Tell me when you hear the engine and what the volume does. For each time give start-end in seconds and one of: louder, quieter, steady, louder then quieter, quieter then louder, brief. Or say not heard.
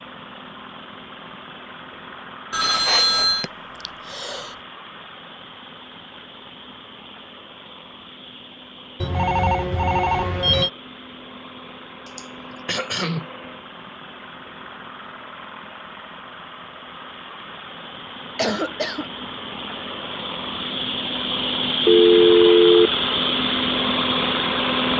0.0-24.9 louder.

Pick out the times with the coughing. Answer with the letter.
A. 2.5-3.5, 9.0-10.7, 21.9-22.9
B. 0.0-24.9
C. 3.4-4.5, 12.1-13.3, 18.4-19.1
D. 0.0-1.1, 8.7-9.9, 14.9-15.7
C.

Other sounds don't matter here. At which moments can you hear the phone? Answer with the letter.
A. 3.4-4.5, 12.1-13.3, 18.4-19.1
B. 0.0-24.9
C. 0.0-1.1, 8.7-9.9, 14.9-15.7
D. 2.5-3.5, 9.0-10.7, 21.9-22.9
D.